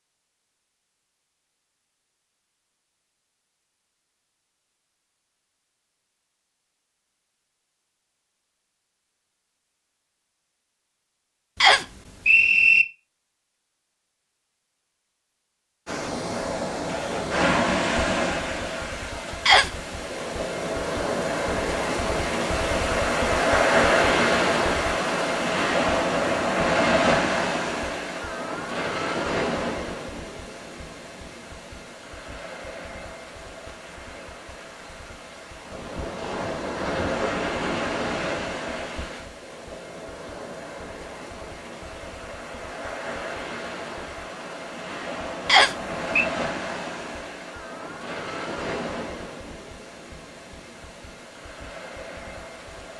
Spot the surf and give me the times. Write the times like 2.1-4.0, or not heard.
15.8-52.9.